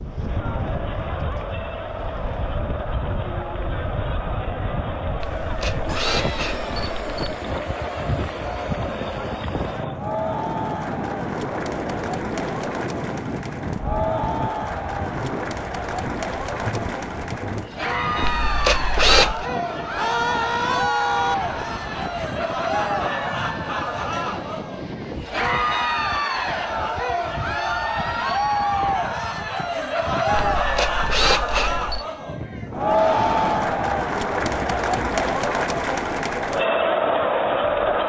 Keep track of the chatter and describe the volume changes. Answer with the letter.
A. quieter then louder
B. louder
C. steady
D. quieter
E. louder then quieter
B.